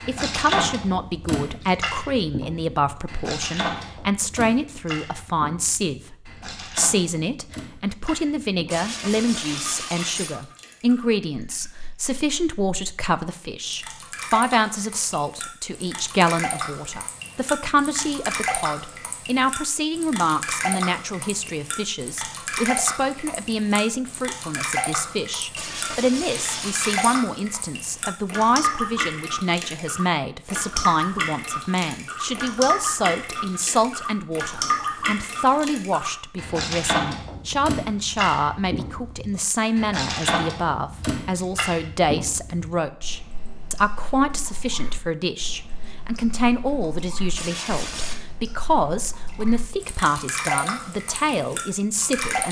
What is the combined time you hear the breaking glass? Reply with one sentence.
You can hear the breaking glass for 4 seconds altogether.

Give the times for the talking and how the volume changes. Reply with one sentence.
The talking can be heard from 0.1 to 52.4 s, at a steady volume.